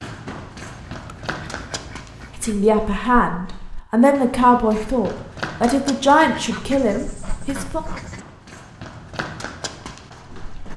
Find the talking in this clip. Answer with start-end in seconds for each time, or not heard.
2.4-7.8.